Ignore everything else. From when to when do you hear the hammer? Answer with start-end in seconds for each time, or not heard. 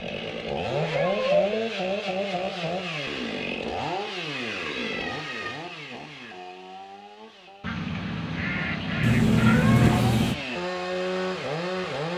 not heard.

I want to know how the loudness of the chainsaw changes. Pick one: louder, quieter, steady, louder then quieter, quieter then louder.
quieter then louder.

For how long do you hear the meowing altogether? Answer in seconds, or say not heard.
3 s.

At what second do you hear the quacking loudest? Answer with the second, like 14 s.
10 s.